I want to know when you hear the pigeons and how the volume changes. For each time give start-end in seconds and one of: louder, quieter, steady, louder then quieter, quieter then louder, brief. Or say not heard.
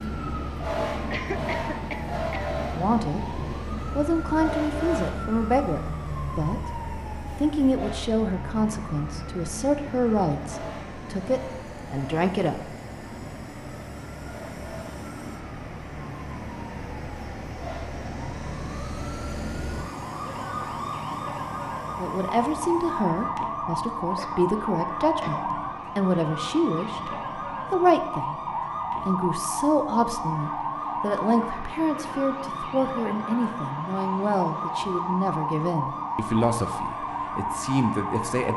not heard.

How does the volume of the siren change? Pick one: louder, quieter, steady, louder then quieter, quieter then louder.
quieter then louder.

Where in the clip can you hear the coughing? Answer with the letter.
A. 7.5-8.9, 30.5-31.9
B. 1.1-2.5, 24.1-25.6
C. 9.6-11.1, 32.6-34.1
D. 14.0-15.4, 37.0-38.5
B.